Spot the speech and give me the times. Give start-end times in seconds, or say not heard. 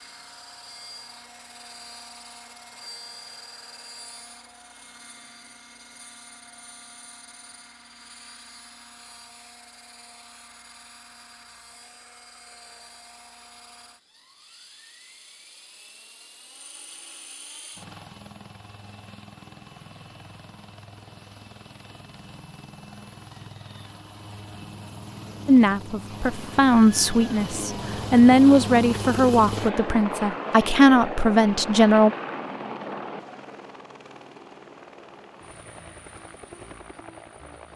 25.4-32.1.